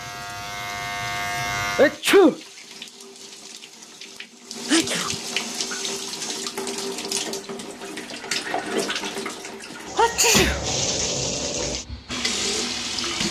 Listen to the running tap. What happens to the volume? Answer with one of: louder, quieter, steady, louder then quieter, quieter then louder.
louder.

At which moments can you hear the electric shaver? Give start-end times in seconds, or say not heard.
0.0-2.0.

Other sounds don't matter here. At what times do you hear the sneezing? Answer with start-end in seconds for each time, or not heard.
1.8-2.4, 4.7-5.2, 9.9-10.6.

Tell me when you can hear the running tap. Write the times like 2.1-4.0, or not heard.
0.0-13.2.